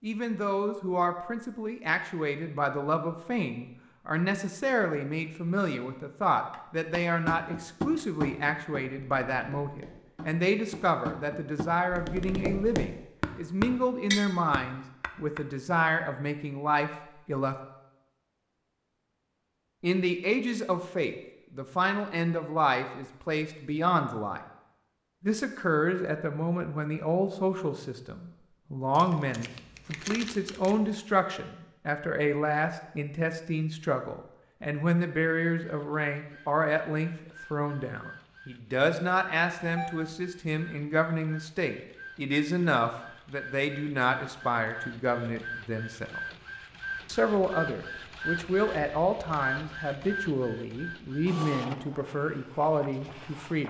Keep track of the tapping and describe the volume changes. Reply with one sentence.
The loudness of the tapping goes down, then up.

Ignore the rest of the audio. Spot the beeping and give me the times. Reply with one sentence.
The beeping can be heard from 39.5 to 40.2 s.